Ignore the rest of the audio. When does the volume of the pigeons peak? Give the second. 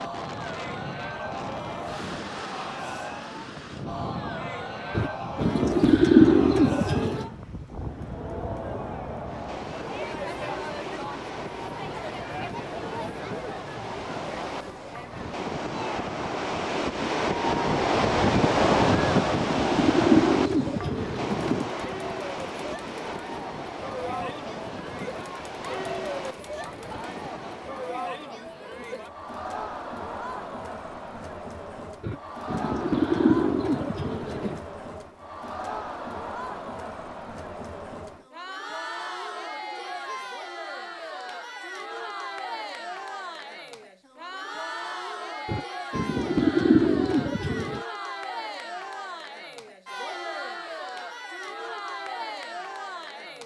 6 s.